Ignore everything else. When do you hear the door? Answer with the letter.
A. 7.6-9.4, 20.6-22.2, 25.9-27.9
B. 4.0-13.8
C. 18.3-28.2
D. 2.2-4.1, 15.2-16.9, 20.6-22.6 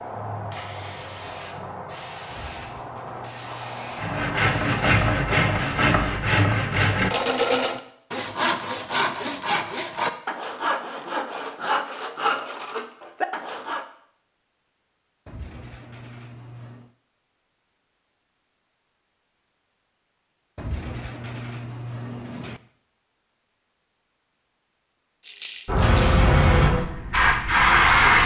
D.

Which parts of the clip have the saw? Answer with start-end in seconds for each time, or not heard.
4.0-13.8.